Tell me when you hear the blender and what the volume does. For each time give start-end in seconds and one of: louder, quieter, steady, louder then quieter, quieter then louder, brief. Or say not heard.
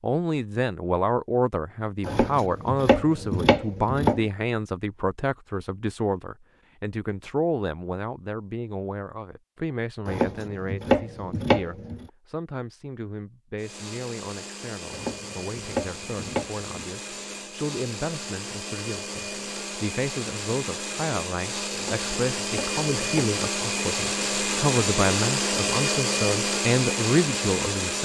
13.6-28.0 louder.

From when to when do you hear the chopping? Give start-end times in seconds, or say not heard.
2.0-4.2, 10.1-12.1, 14.9-16.6, 21.7-23.3.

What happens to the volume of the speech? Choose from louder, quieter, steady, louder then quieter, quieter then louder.
quieter then louder.